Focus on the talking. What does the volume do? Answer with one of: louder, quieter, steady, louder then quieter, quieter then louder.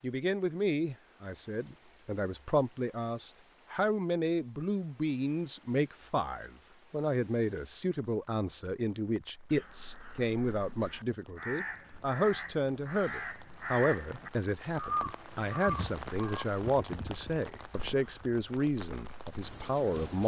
steady.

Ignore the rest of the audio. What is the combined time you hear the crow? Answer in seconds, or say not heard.
9 s.